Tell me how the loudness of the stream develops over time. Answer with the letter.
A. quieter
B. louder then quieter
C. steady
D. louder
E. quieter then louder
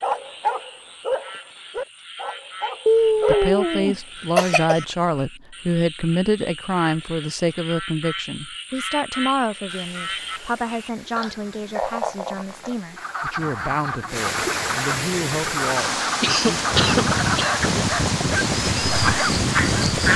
D.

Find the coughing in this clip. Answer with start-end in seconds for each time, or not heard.
2.9-4.8, 16.2-17.6.